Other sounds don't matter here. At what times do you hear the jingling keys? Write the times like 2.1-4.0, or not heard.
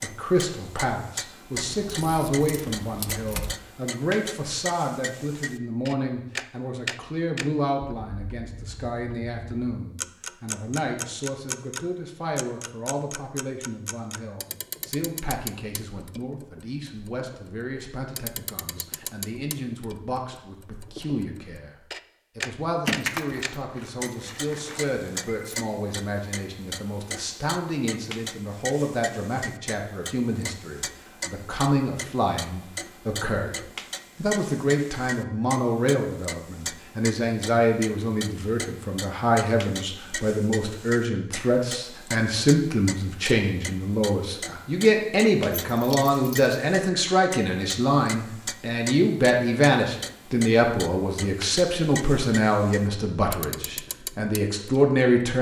1.6-3.5, 22.9-25.6, 45.7-46.5.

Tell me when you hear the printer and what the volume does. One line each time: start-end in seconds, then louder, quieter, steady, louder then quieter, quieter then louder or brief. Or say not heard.
not heard.